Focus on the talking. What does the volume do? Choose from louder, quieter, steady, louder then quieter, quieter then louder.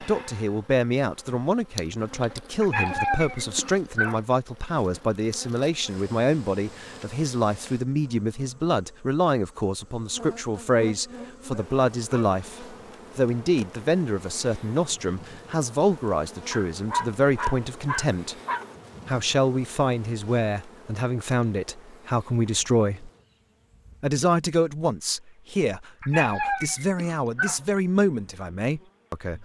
steady.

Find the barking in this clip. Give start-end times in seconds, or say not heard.
2.6-4.2, 11.1-12.9, 16.5-18.6, 26.0-27.6.